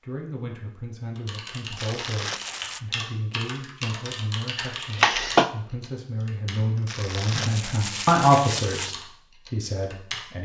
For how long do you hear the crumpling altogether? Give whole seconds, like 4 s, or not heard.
3 s.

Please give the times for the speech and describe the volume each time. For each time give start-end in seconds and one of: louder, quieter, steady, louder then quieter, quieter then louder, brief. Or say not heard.
0.0-10.4 louder.